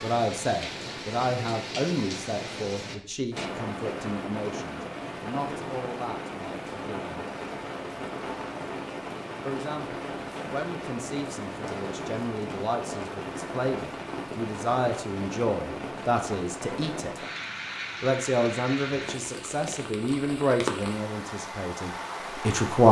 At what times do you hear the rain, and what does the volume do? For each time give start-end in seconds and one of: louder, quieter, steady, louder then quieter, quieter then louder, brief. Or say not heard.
0.0-22.8 steady.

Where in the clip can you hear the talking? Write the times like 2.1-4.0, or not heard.
0.0-7.2, 9.4-17.1, 18.0-22.8.